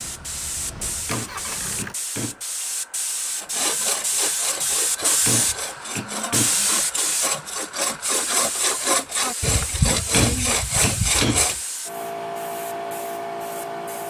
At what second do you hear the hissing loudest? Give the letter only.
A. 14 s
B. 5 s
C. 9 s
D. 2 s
B.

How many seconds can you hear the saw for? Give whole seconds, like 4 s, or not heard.
8 s.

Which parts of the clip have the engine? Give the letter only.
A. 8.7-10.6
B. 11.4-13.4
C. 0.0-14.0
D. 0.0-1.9
D.